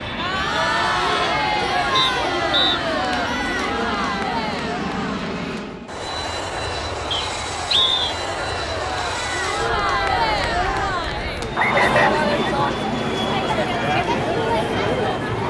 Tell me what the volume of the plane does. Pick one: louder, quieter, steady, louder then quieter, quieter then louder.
steady.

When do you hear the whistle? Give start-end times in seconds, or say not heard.
1.9-2.8, 7.1-8.0, 11.6-12.2.